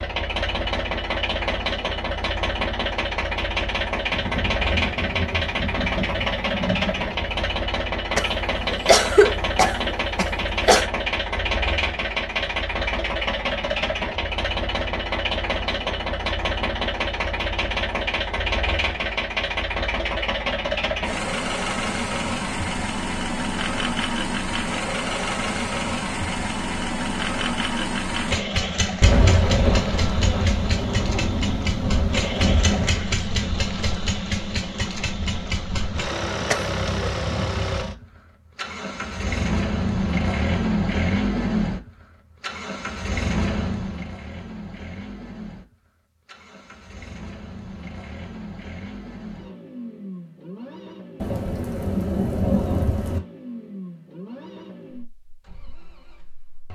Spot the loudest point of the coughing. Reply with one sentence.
The volume of the coughing peaks at 9 seconds.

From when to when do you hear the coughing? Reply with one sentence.
You can hear the coughing from 8.2 to 10.8 s and from 36.5 to 37.1 s.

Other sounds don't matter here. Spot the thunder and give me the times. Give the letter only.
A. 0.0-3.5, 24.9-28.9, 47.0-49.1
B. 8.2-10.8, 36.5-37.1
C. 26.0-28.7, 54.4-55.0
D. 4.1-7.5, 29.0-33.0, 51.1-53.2
D.